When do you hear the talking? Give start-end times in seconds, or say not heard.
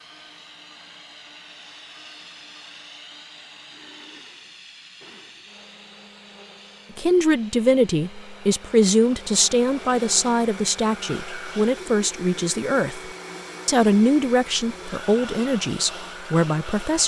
6.9-17.0.